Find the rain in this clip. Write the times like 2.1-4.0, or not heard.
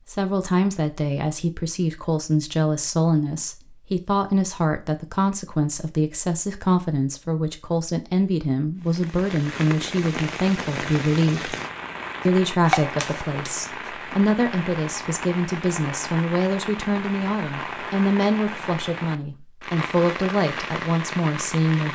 8.8-21.9.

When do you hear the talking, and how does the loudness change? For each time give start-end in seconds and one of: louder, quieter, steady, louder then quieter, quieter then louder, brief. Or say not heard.
0.1-11.6 steady
12.2-21.9 steady.